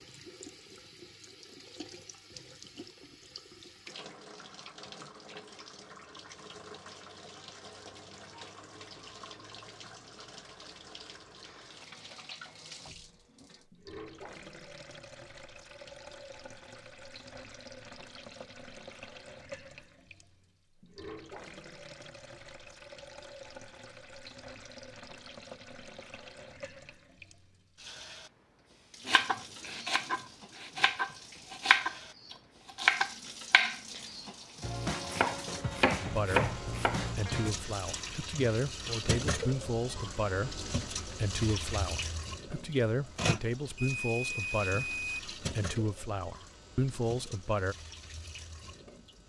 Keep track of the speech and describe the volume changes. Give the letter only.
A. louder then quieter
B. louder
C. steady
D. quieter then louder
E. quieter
C.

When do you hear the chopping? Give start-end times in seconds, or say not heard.
29.1-37.5.